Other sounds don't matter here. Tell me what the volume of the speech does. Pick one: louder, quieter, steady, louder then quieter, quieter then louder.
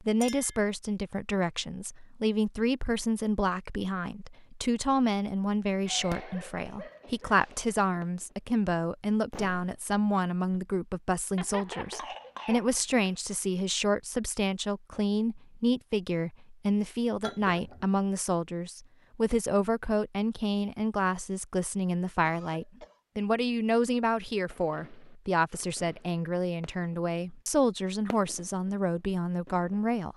steady.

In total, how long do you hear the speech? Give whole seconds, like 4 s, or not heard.
30 s.